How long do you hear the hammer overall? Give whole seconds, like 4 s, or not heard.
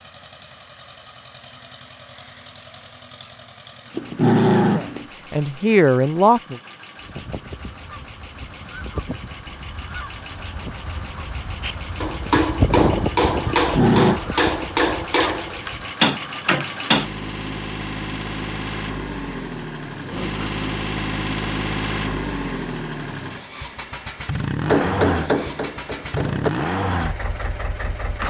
7 s.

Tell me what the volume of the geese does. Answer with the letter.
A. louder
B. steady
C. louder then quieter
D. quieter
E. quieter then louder
C.